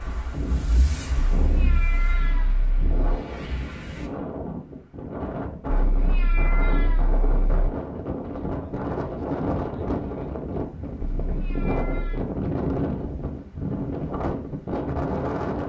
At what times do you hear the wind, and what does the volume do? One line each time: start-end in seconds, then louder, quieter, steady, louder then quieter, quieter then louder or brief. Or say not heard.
0.0-15.6 louder.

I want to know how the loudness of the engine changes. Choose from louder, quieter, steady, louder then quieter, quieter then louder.
quieter then louder.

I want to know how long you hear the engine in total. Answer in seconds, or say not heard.
4 s.